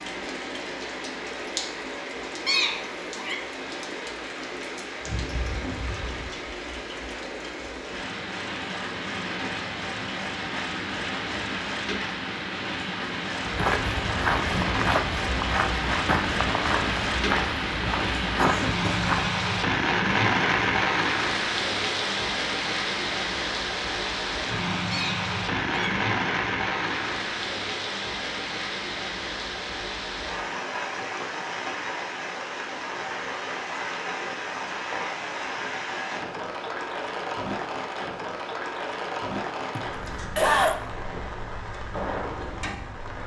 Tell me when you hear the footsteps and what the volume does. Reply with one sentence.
The footsteps can be heard from 13.4 to 19.4 s, at a steady volume.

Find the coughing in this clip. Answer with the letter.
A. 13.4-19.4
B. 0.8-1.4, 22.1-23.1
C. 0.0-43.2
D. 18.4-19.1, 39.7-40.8
D.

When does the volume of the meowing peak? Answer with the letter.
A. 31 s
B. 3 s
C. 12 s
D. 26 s
B.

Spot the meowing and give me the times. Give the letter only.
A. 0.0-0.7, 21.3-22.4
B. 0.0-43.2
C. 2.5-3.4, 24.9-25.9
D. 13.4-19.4
C.